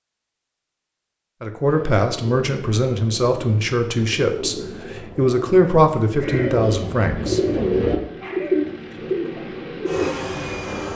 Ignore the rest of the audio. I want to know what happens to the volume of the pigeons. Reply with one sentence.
The loudness of the pigeons goes up.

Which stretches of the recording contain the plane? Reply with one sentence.
You can hear the plane from 7.2 to 10.9 s.